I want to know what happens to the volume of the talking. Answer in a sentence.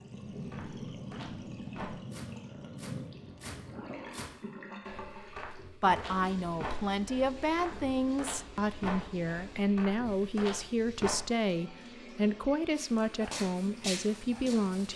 The volume of the talking stays about the same.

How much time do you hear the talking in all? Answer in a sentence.
You can hear the talking for 9 seconds altogether.